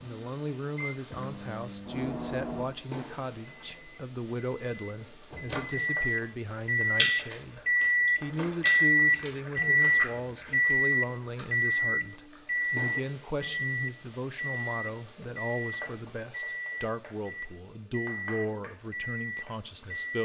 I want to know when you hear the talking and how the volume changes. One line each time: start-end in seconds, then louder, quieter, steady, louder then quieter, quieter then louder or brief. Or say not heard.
0.0-20.2 steady.